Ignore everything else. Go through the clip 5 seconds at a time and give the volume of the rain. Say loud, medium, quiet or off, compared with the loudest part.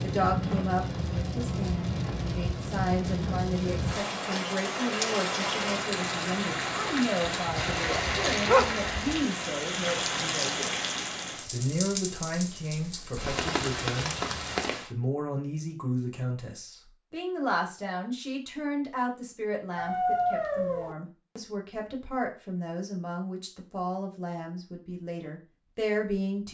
loud, loud, loud, off, off, off.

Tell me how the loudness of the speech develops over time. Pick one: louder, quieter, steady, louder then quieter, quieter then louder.
steady.